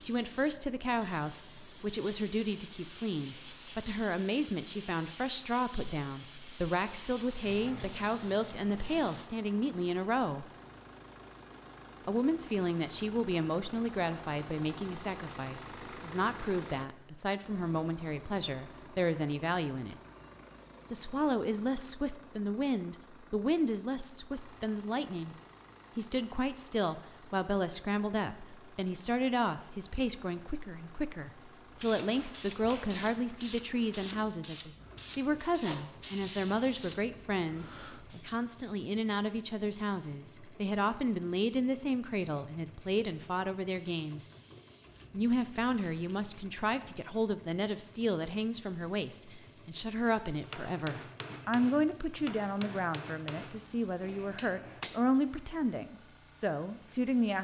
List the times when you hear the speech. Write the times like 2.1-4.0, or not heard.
0.0-10.4, 12.1-19.9, 20.9-25.4, 25.9-44.3, 45.1-57.4.